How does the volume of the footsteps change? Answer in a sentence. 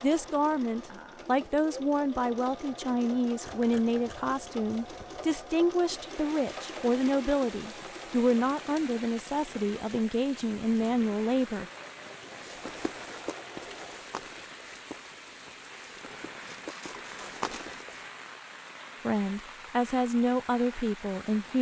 The loudness of the footsteps goes down, then up.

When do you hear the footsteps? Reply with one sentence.
You can hear the footsteps from 12.3 to 18.1 s.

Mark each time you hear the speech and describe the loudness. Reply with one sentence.
The speech can be heard from 0.0 to 11.7 s, at a steady volume; and briefly from 19.1 to 21.5 s.